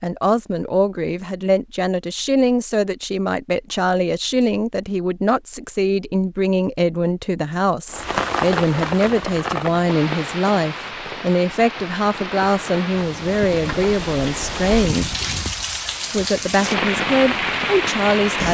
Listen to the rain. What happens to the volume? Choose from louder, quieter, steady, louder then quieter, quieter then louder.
quieter then louder.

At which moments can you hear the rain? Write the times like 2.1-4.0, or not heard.
7.8-18.4.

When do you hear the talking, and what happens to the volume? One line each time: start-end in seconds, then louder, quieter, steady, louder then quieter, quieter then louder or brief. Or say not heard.
0.0-15.2 steady
16.1-18.4 brief.